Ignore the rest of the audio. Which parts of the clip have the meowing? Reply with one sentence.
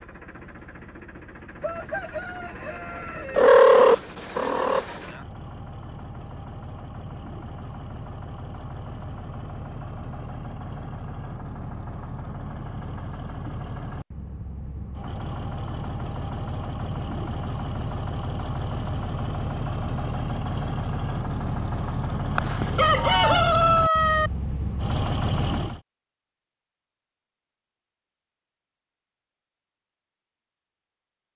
The meowing can be heard from 3.4 to 5.0 s and from 22.4 to 23.4 s.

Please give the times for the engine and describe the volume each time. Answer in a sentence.
The engine can be heard from 0.0 to 25.8 s, getting louder.